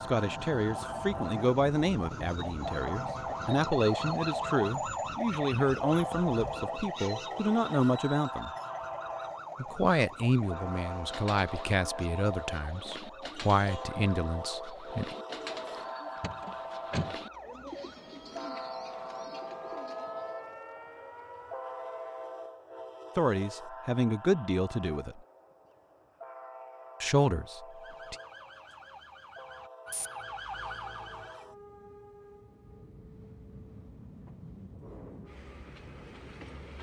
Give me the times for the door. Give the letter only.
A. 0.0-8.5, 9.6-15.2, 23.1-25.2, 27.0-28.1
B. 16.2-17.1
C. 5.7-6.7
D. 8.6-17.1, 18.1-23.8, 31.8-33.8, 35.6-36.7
B.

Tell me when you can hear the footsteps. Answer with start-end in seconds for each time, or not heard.
not heard.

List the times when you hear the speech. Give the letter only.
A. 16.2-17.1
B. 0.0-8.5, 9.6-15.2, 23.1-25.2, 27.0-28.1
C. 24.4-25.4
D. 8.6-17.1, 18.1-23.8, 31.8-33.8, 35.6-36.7
B.